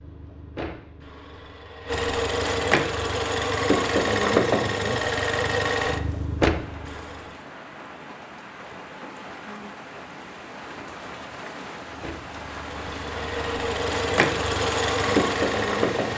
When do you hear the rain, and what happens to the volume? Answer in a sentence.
The rain can be heard from 6.5 to 16.1 s, getting louder.